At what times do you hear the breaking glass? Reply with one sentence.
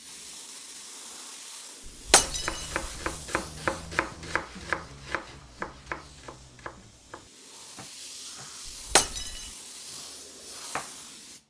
The breaking glass can be heard from 1.9 to 2.9 s and from 8.7 to 9.5 s.